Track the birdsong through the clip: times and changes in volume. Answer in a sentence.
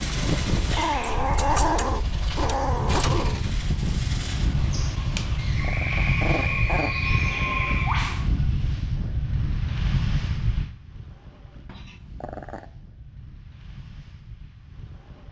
The birdsong can be heard from 0.0 to 8.3 s, getting louder.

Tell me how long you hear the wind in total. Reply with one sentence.
The wind can be heard for 15 seconds in total.